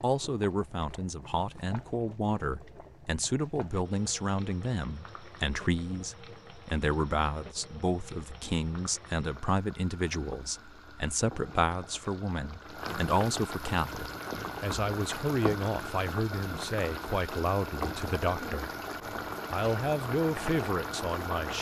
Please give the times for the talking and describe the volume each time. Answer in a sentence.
You can hear the talking from 0.0 to 18.7 s, at a steady volume; and briefly from 19.5 to 21.5 s.